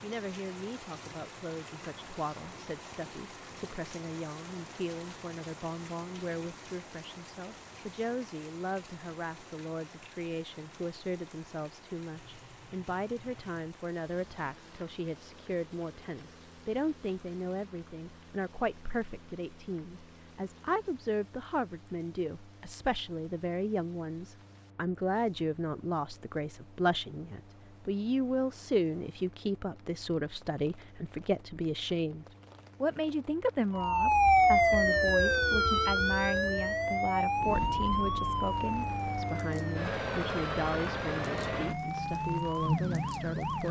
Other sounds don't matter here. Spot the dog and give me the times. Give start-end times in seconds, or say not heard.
not heard.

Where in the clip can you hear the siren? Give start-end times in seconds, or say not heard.
33.8-43.6.